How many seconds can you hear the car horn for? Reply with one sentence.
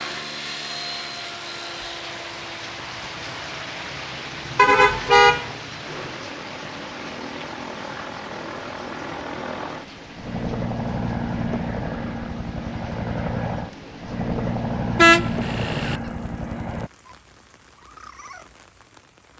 The car horn can be heard for 2 seconds in total.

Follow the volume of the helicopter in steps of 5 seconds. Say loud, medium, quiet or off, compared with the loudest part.
medium, medium, loud, loud.